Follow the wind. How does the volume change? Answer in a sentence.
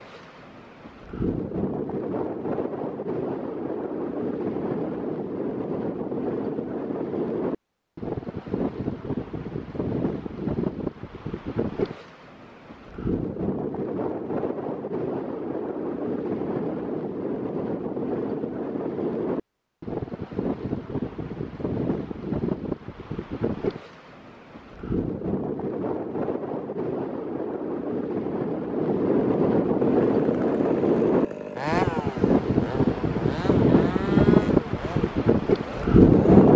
The volume of the wind goes up.